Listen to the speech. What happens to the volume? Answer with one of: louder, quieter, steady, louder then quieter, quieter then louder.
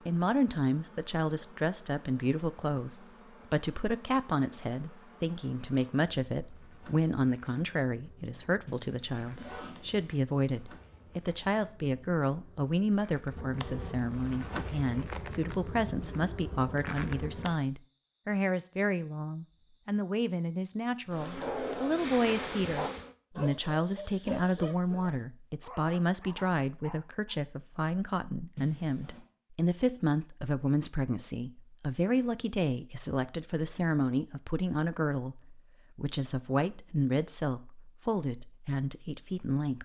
steady.